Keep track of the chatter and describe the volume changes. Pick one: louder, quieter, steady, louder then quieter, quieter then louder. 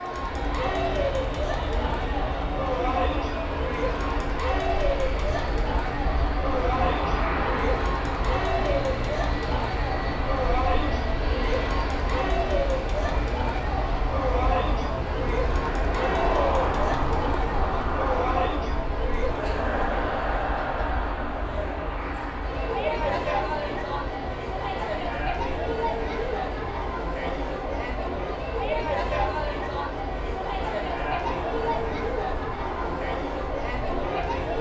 steady.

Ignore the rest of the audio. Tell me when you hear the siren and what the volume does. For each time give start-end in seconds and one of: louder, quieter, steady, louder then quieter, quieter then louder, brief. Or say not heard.
not heard.